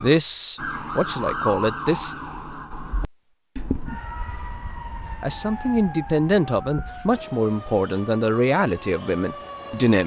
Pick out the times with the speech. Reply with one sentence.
You can hear the speech from 0.0 to 2.1 s and from 5.0 to 10.0 s.